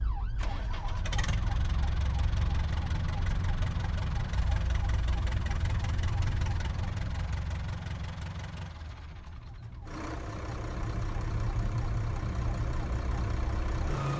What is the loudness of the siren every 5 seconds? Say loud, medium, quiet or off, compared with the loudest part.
medium, medium, loud.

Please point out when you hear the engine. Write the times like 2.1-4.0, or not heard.
0.2-14.1.